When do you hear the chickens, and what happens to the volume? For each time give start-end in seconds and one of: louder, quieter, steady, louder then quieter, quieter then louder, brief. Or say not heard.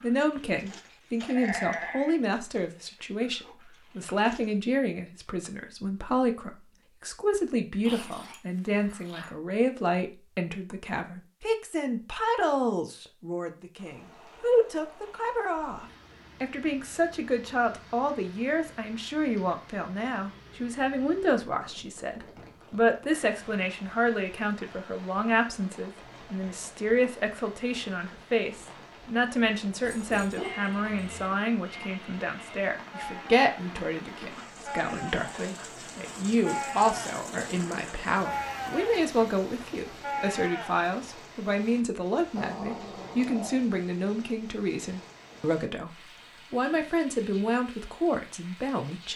not heard.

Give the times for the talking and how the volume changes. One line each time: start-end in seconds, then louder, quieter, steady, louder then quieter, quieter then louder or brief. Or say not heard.
0.0-49.1 steady.